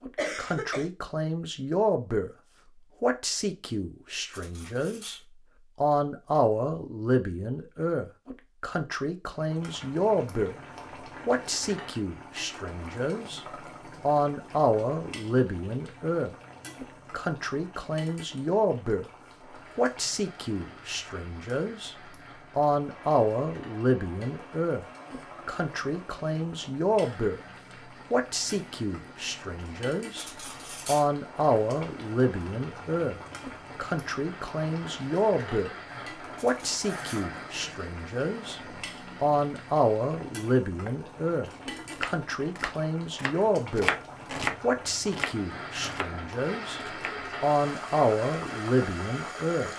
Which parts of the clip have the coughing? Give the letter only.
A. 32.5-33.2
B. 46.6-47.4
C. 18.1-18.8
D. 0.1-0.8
D.